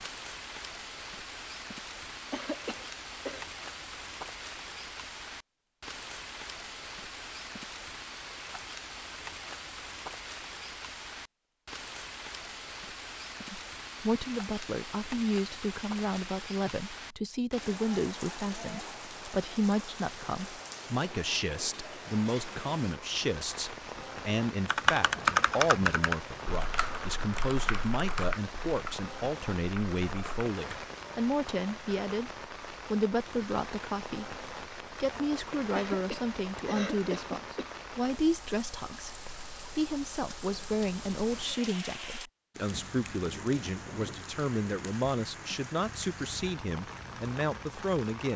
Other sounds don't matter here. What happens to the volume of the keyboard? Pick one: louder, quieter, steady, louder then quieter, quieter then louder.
quieter.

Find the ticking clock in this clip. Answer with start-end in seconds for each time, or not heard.
not heard.